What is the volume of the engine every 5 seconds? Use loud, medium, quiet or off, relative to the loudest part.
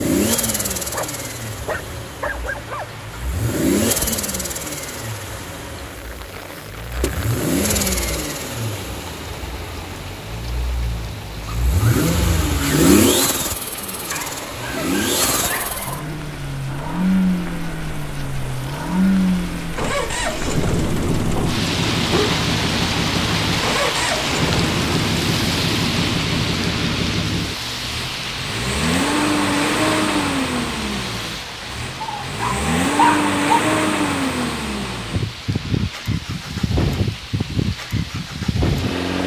loud, medium, loud, loud, loud, loud, loud, loud.